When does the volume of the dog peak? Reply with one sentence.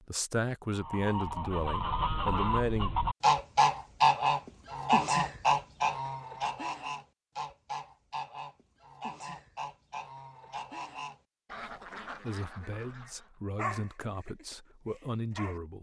The loudest moment of the dog is at 14 seconds.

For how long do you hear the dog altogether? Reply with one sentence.
The dog can be heard for 2 seconds in total.